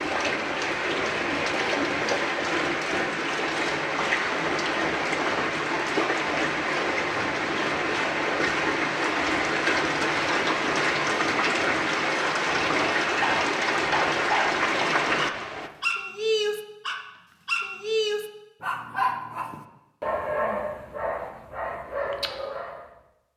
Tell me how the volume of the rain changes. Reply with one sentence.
The volume of the rain stays about the same.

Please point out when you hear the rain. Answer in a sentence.
The rain can be heard from 0.0 to 15.7 s.